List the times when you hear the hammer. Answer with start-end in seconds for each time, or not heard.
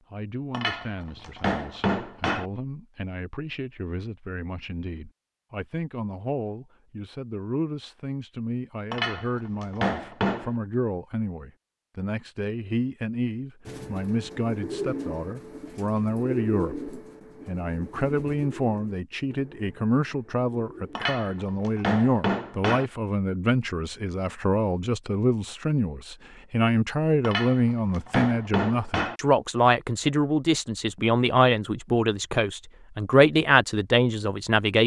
0.5-2.5, 8.9-10.6, 20.9-22.9, 27.2-29.1.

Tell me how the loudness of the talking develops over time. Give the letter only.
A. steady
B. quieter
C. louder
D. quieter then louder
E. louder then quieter
C.